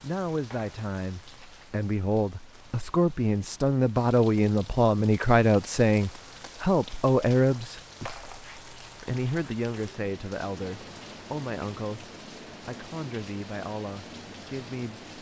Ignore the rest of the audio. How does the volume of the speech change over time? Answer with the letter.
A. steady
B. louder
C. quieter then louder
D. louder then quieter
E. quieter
D.